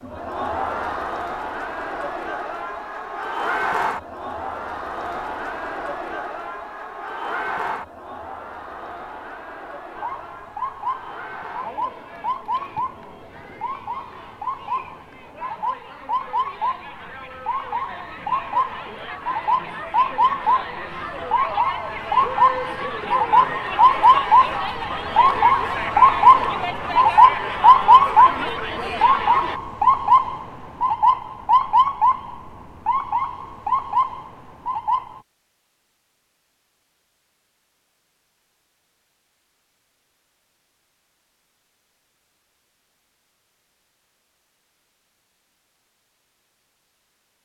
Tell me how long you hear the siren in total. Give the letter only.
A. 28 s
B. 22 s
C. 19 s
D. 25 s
D.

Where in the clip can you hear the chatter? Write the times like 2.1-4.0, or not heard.
0.0-29.6.